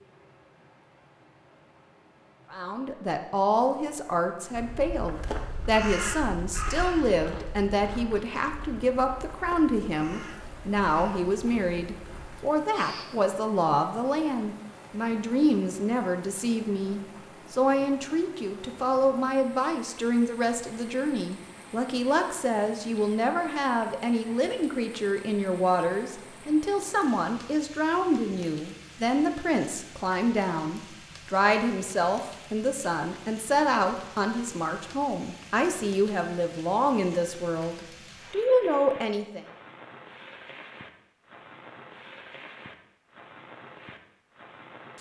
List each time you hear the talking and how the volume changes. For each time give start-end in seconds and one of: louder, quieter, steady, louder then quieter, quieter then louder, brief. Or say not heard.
2.5-39.5 steady.